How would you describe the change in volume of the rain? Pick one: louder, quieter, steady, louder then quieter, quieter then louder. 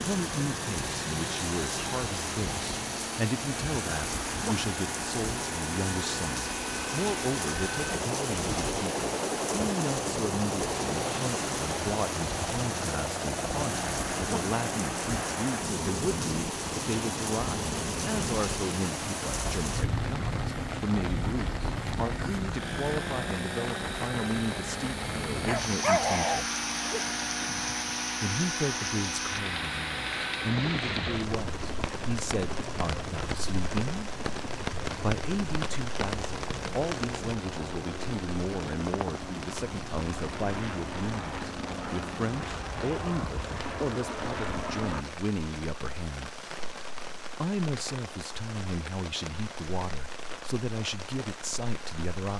quieter.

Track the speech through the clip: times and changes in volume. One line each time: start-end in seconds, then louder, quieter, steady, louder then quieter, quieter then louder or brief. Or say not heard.
0.0-26.5 steady
28.2-34.1 steady
35.0-46.4 steady
47.4-52.3 steady.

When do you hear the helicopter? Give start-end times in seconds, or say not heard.
0.1-45.0.